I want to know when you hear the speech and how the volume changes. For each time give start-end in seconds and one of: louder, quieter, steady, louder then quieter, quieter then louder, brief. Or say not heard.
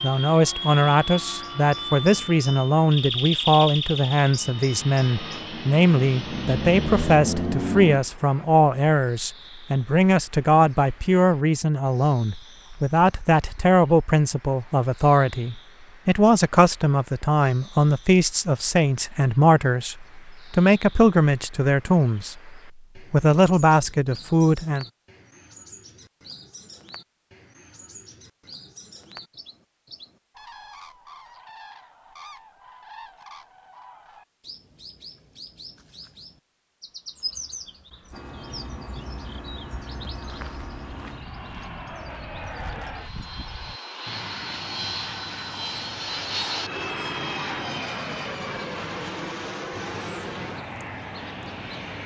0.0-24.9 steady.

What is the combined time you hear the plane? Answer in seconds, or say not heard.
22 s.